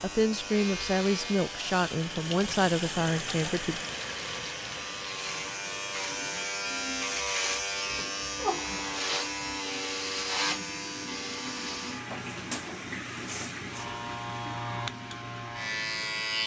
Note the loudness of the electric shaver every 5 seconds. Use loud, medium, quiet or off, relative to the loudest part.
medium, loud, loud, loud.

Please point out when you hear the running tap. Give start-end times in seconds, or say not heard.
0.1-16.4.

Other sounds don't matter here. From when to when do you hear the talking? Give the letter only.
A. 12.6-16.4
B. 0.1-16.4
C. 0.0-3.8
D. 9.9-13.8
C.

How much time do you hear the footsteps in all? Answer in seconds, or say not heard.
not heard.